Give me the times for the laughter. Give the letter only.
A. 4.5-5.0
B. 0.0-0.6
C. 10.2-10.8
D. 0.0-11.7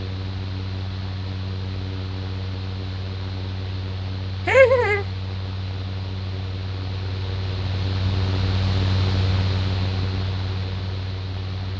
A.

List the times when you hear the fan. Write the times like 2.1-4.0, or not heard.
0.0-11.7.